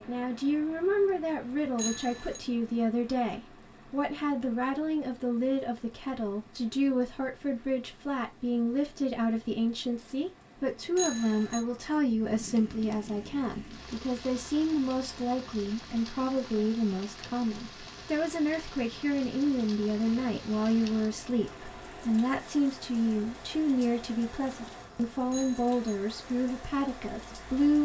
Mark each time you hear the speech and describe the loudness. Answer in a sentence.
You can hear the speech from 0.1 to 27.7 s, at a steady volume.